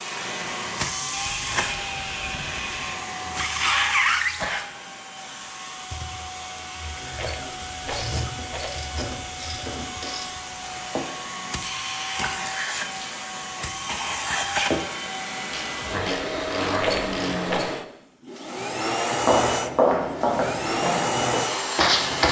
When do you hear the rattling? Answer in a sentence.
The rattling can be heard from 7.2 to 8.8 s and from 16.8 to 17.7 s.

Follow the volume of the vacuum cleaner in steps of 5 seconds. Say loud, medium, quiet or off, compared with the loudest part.
loud, medium, loud, loud, loud.